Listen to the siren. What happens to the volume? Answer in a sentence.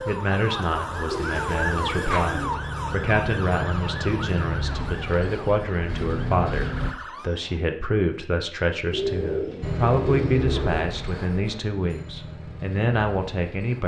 The loudness of the siren goes down.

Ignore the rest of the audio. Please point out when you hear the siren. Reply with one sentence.
You can hear the siren from 0.0 to 7.6 s.